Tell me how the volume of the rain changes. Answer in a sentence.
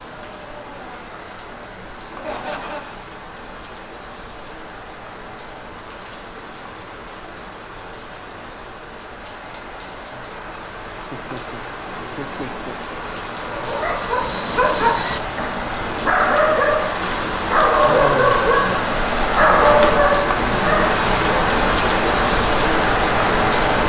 The loudness of the rain goes up.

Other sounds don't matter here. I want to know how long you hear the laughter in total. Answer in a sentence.
You can hear the laughter for 3 seconds altogether.